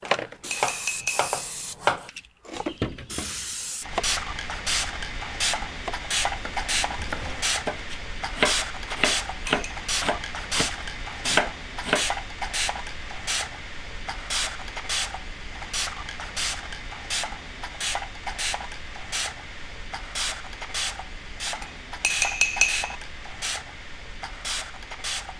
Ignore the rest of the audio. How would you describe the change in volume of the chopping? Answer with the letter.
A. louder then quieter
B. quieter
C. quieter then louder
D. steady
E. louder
C.